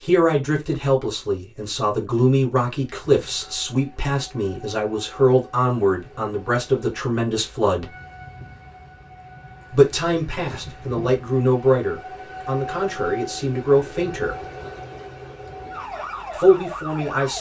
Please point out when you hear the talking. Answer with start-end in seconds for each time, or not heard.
0.0-7.9, 9.7-14.3, 16.4-17.3.